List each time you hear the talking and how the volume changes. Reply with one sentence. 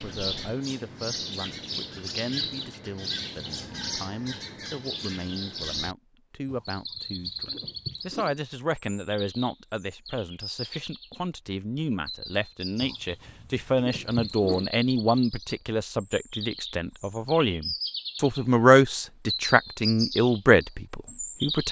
You can hear the talking from 0.0 to 21.6 s, getting louder.